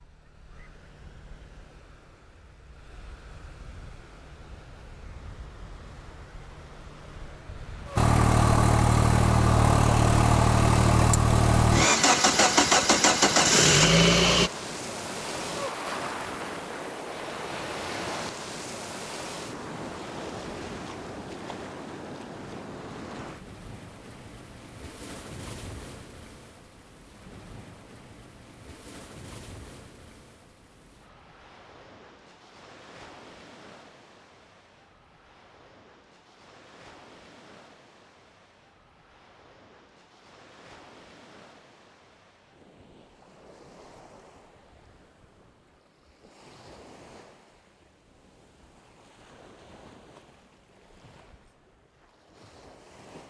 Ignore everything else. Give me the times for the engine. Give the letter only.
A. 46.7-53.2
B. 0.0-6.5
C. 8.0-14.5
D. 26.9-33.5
C.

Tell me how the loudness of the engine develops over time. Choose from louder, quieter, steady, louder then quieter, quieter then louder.
steady.